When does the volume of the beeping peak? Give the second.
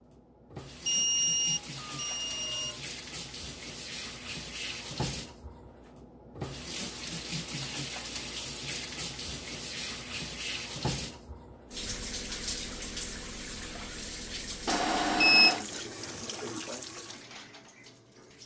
15 s.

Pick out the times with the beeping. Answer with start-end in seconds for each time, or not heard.
0.8-2.8, 14.7-15.7.